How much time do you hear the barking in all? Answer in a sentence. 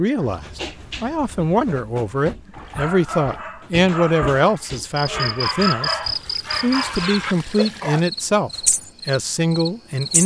You can hear the barking for 8 seconds altogether.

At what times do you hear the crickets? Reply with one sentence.
You can hear the crickets from 5.0 to 10.2 s.